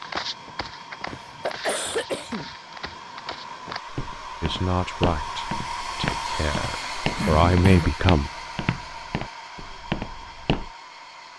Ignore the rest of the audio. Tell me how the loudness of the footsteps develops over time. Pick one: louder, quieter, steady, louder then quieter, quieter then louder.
louder.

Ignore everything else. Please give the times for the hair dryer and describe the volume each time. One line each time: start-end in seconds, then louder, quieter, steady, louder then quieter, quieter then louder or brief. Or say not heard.
0.0-11.3 louder then quieter.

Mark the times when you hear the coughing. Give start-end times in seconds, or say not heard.
1.2-2.5, 7.2-7.9.